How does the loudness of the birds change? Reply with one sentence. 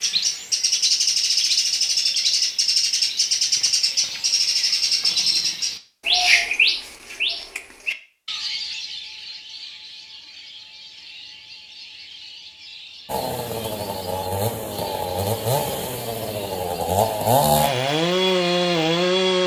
The volume of the birds goes down.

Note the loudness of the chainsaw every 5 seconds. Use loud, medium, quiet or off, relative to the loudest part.
off, off, medium, loud.